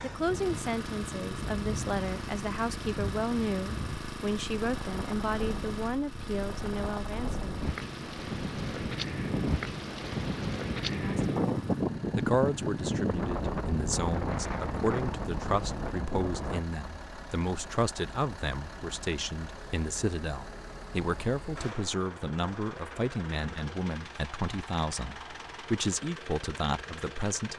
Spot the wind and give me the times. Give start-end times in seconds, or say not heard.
0.0-16.6.